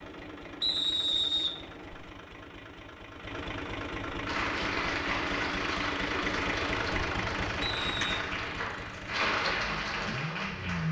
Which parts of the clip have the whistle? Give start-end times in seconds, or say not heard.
0.6-2.0, 7.6-8.2.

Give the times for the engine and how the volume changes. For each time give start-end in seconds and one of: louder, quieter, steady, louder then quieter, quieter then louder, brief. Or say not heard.
0.0-10.8 louder then quieter.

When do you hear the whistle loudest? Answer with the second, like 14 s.
1 s.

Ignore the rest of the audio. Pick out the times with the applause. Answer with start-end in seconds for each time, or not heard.
4.2-10.8.